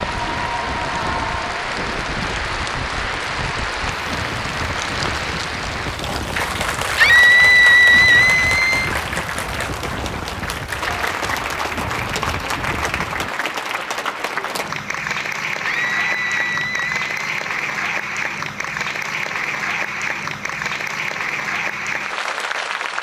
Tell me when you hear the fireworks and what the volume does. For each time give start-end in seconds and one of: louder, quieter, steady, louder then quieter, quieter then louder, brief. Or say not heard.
not heard.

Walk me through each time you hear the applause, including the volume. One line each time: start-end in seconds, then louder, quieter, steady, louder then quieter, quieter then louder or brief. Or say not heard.
0.0-22.9 steady.